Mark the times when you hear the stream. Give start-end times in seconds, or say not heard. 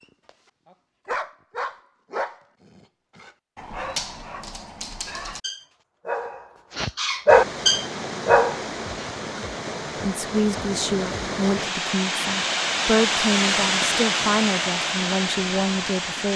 7.2-16.3.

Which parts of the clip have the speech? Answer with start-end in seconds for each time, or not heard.
10.0-16.3.